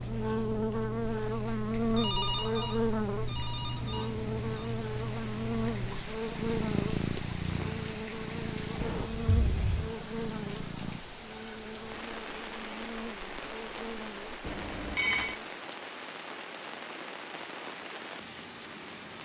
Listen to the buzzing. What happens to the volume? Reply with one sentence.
The volume of the buzzing goes down.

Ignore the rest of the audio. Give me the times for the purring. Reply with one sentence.
The purring can be heard from 0.0 to 11.0 s.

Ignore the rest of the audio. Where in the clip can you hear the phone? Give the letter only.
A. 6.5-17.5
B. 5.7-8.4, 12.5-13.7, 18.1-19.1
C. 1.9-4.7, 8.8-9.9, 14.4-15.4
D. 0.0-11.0
C.